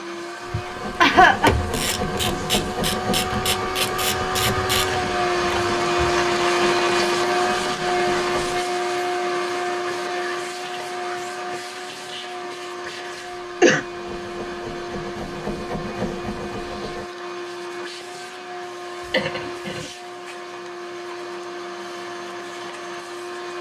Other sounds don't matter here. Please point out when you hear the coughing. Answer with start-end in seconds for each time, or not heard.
0.5-1.6, 12.8-13.8, 19.1-19.9.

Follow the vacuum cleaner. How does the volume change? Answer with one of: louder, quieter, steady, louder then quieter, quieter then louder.
louder then quieter.